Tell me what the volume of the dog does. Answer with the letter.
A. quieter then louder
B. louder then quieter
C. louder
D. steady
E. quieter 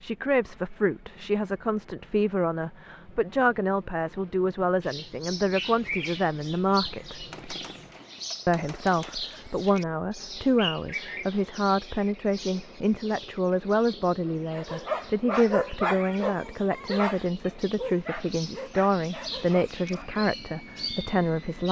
E.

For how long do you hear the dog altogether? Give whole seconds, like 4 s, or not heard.
6 s.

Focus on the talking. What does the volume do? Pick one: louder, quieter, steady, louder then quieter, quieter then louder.
steady.